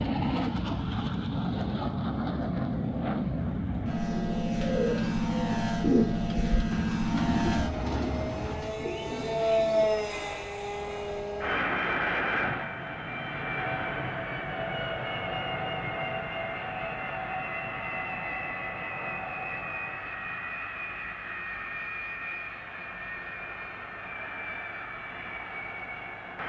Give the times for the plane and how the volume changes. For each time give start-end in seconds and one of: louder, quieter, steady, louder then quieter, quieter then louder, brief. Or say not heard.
0.0-26.4 quieter.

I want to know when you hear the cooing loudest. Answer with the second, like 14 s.
6 s.